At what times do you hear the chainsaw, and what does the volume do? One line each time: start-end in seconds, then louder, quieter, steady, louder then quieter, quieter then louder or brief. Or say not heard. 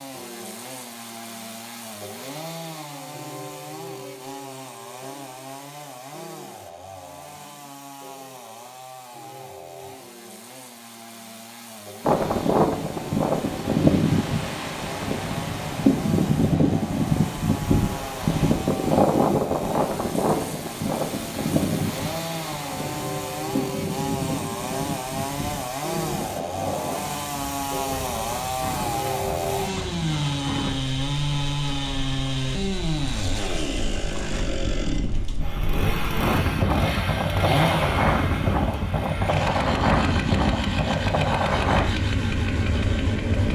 0.0-43.5 louder.